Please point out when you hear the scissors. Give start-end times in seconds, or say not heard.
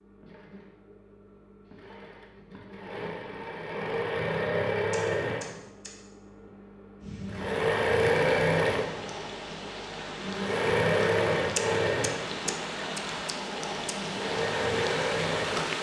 4.9-5.9, 11.6-13.9.